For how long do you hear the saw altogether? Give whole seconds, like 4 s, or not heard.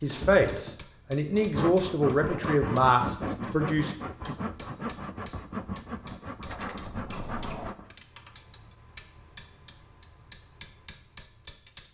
7 s.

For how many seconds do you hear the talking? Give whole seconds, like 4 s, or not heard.
4 s.